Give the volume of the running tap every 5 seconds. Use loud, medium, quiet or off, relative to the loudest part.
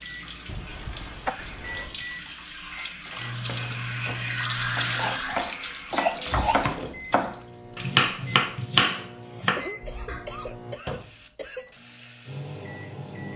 loud, loud, quiet.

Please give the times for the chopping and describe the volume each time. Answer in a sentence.
You can hear the chopping from 3.4 to 10.2 s, getting louder.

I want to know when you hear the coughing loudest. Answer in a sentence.
The loudest moment of the coughing is at 6 seconds.